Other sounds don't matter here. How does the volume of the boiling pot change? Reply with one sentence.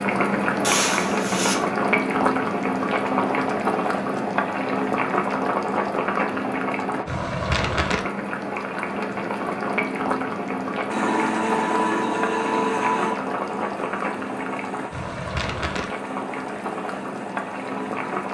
The loudness of the boiling pot goes down.